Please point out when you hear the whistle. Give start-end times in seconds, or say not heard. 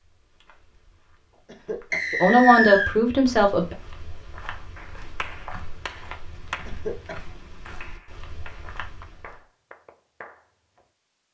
1.9-3.0.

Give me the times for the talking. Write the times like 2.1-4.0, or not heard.
2.2-3.8.